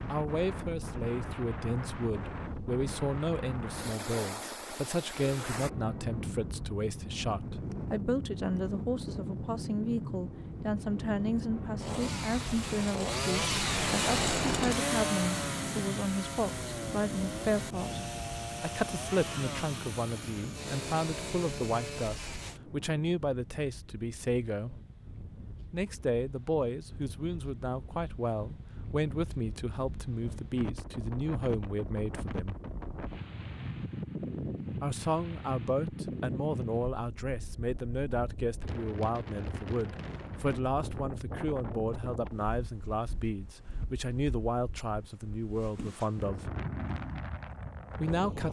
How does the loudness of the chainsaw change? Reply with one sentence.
The loudness of the chainsaw goes down.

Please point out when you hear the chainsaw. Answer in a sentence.
The chainsaw can be heard from 11.8 to 22.6 s.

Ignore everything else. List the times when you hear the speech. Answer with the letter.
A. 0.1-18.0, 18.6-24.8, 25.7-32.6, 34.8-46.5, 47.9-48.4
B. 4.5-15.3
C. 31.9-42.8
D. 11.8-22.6
A.